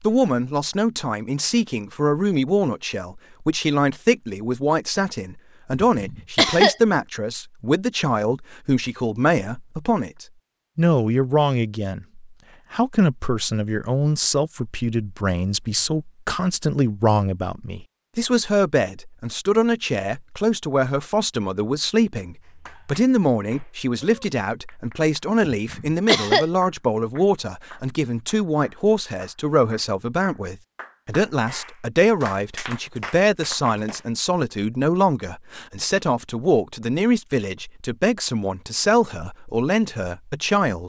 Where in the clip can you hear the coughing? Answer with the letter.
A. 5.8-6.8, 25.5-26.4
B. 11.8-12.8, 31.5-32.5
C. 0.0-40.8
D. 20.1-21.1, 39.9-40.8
A.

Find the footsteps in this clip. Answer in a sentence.
You can't hear the footsteps here.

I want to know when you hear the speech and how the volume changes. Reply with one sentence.
The speech can be heard from 0.0 to 40.8 s, at a steady volume.